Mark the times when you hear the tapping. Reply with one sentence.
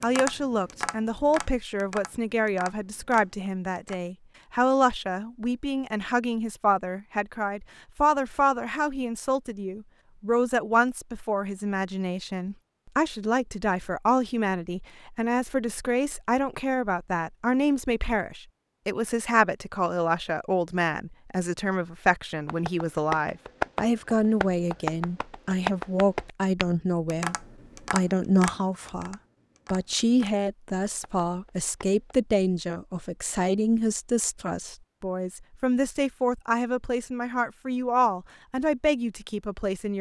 You can hear the tapping from 0.0 to 4.0 s and from 22.4 to 32.2 s.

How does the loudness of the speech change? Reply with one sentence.
The volume of the speech stays about the same.